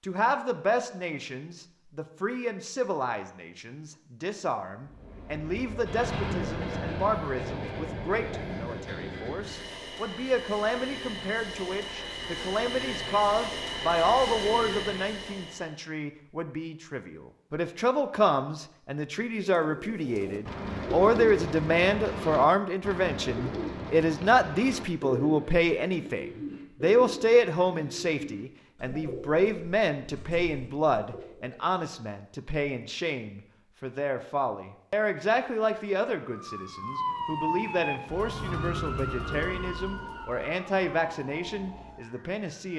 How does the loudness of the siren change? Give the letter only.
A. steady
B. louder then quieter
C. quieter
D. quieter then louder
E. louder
C.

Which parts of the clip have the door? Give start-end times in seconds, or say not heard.
not heard.